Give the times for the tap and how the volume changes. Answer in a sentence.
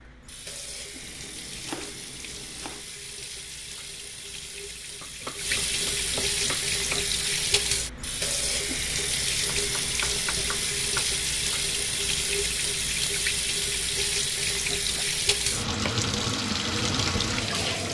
You can hear the tap from 0.0 to 17.8 s, getting louder.